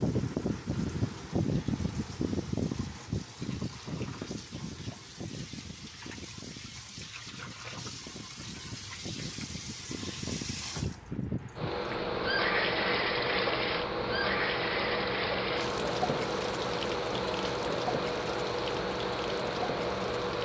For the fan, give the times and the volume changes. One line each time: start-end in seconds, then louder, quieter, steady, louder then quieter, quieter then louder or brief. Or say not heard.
0.0-20.4 quieter then louder.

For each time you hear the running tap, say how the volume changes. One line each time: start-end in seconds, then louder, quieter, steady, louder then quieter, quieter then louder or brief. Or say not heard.
0.0-20.4 louder then quieter.